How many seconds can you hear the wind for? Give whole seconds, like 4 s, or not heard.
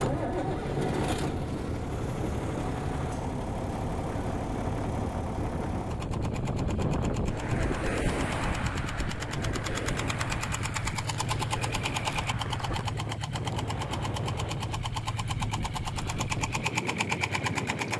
18 s.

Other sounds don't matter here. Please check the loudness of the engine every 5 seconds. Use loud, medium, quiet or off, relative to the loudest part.
loud, medium, loud, loud.